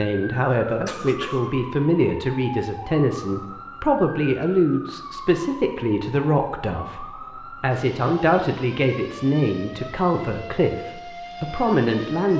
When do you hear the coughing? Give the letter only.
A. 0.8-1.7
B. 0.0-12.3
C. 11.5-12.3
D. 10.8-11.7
A.